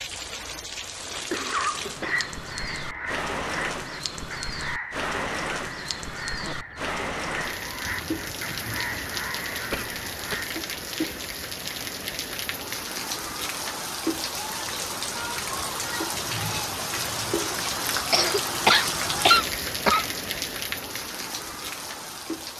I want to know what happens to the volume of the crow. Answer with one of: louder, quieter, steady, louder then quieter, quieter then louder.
steady.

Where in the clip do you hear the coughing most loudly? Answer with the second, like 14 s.
19 s.